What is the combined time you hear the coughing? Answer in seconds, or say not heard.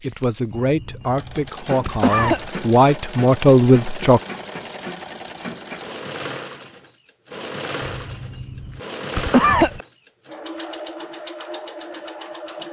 4 s.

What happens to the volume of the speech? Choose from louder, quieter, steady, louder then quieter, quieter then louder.
louder.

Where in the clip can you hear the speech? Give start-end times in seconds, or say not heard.
0.0-4.2.